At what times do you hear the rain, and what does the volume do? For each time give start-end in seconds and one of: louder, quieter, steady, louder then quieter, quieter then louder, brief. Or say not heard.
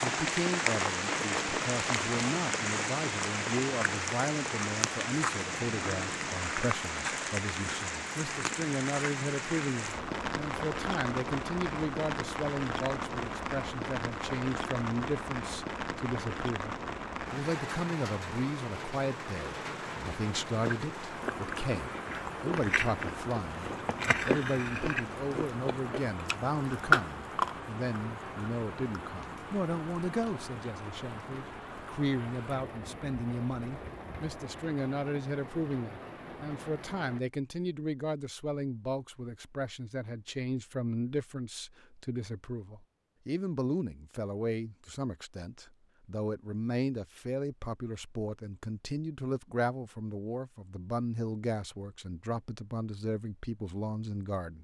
0.0-37.2 quieter.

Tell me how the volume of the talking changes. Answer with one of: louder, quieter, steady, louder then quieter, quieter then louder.
steady.